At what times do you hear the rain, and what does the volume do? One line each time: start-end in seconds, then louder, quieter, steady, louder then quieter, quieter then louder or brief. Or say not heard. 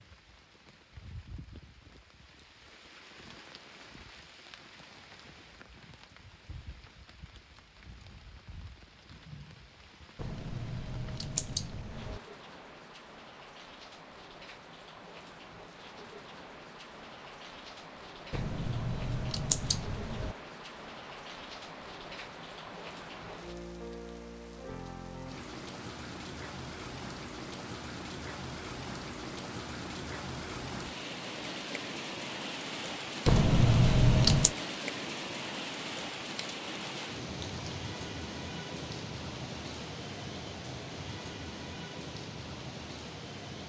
0.0-43.6 louder.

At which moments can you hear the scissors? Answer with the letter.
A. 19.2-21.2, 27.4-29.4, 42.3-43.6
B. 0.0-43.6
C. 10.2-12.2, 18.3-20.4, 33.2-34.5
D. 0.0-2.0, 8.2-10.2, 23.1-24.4
C.